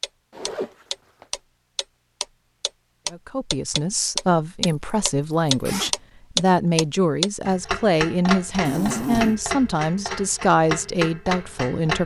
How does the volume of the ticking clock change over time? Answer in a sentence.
The loudness of the ticking clock goes up, then down.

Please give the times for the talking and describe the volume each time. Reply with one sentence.
The talking can be heard from 3.1 to 12.0 s, at a steady volume.